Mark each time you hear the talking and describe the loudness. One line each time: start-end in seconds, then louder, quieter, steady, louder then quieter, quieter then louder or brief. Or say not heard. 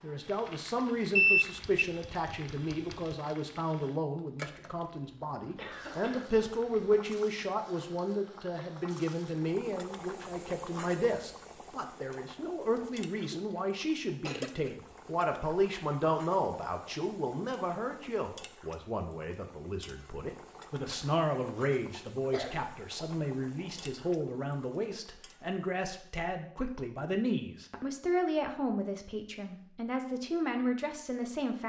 0.0-31.6 steady.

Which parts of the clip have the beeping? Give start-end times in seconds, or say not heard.
1.1-3.1.